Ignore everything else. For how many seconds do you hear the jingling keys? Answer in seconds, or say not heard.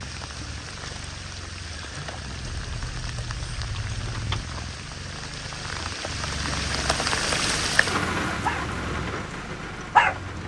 2 s.